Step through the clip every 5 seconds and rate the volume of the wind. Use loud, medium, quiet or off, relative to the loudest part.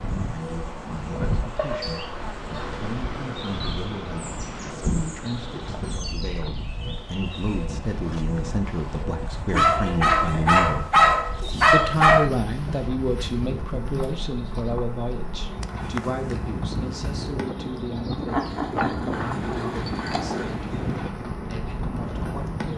loud, medium, medium, loud, loud.